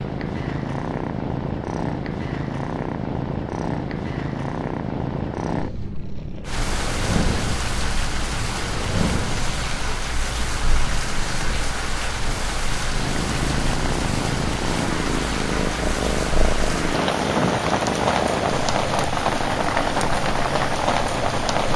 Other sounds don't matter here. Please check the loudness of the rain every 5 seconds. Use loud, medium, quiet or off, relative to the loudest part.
off, medium, medium, loud, loud.